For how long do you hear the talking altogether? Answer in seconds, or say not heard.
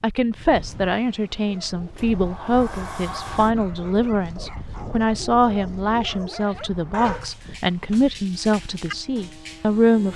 10 s.